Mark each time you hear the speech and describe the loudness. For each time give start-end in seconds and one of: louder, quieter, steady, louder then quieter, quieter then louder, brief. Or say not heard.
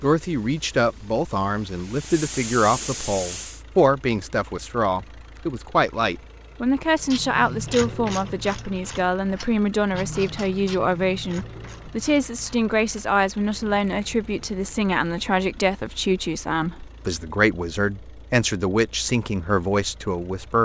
0.0-20.6 steady.